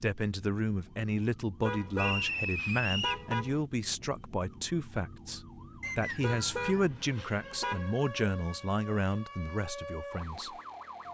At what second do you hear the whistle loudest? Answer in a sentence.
The loudest moment of the whistle is at 2 seconds.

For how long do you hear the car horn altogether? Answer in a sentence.
You can hear the car horn for 4 seconds altogether.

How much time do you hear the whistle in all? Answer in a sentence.
You can hear the whistle for 2 seconds altogether.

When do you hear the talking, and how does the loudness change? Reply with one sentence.
You can hear the talking from 0.0 to 10.6 s, at a steady volume.